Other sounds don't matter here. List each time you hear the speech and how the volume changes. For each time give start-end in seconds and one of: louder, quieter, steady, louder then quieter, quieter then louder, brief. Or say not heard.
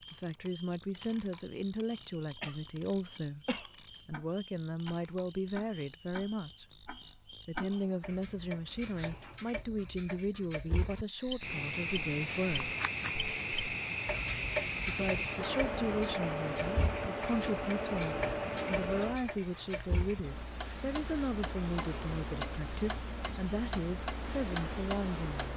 0.1-6.7 steady
7.5-12.8 steady
14.8-25.5 steady.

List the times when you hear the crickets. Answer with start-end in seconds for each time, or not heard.
0.0-25.5.